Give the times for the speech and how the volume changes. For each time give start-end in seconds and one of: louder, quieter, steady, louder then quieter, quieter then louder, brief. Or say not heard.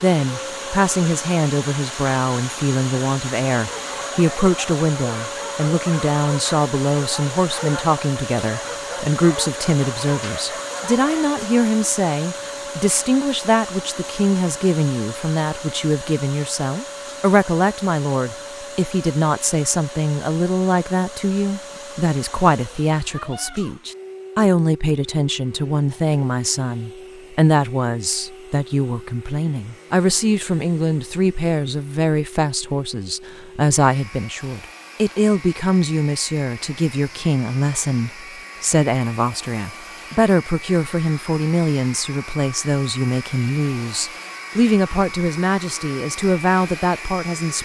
0.0-47.5 steady.